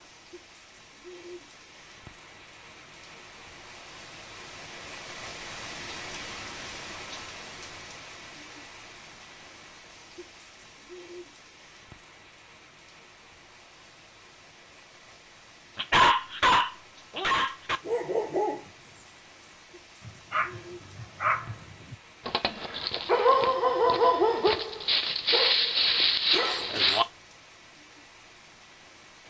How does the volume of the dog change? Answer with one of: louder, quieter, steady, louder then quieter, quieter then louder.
quieter then louder.